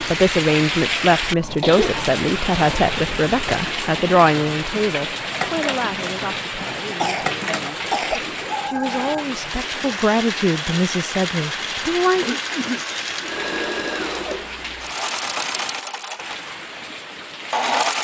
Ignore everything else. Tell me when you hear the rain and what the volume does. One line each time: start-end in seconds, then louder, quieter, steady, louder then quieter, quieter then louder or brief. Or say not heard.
0.0-17.9 quieter.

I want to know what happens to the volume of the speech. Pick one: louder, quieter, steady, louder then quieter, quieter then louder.
quieter then louder.